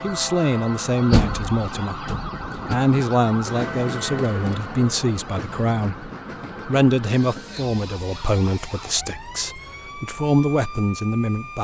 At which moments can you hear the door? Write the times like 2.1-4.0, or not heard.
1.1-2.8.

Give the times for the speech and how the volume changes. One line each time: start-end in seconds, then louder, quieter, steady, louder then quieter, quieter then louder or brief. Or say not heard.
0.0-11.5 steady.